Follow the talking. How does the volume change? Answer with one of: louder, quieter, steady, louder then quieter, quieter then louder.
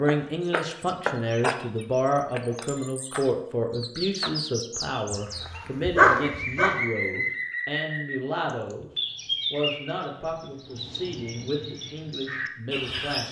quieter.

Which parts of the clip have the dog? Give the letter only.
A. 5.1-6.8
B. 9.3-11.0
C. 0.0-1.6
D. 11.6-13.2
A.